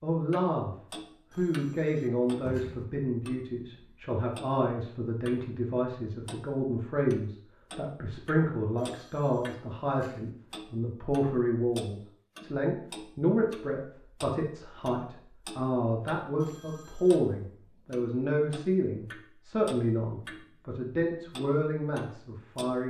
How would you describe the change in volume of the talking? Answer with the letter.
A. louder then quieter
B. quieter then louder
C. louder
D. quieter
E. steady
E.